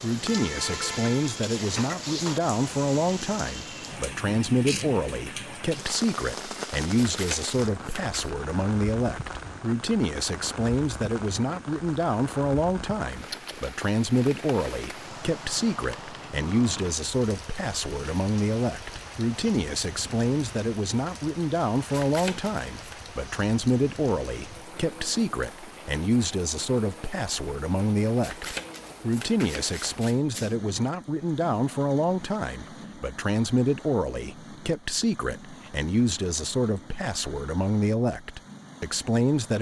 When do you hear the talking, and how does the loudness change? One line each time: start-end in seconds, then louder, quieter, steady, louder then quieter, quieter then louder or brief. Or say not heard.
0.0-39.5 steady.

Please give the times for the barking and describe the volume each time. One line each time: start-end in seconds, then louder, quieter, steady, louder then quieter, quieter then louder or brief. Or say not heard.
not heard.